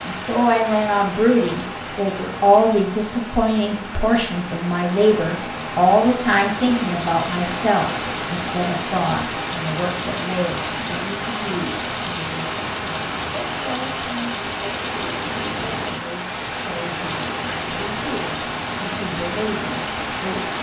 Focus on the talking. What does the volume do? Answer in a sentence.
The loudness of the talking goes down.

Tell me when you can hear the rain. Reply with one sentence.
The rain can be heard from 0.0 to 20.5 s.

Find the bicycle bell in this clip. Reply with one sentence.
The bicycle bell can be heard from 0.2 to 0.9 s.